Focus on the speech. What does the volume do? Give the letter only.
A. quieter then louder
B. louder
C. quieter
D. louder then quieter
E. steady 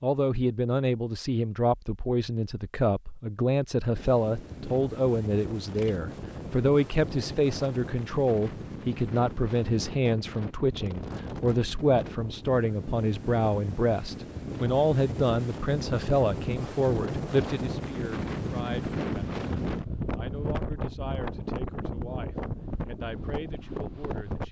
C.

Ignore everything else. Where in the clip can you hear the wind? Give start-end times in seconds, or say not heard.
4.0-24.4.